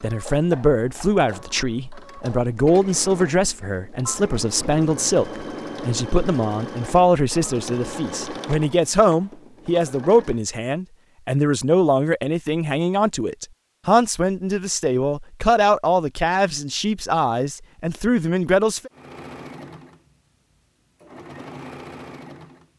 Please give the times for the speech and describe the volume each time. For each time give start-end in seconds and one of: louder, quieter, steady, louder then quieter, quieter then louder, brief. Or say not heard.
0.0-18.9 steady.